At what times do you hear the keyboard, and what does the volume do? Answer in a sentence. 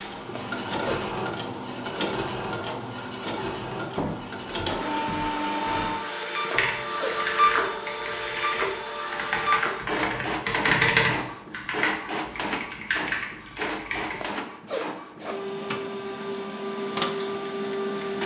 The keyboard can be heard from 6.5 to 14.2 s, getting louder then quieter.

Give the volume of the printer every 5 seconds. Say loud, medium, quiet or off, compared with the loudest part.
loud, loud, medium, loud.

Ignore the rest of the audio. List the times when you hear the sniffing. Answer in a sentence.
You can hear the sniffing from 0.2 to 1.1 s, from 6.5 to 7.2 s and from 14.2 to 15.4 s.